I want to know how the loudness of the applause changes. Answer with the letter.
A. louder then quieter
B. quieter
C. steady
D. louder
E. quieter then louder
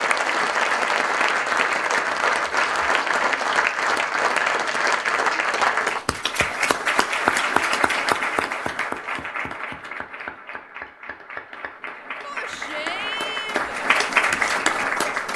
E.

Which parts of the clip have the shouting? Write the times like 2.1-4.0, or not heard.
12.2-13.8.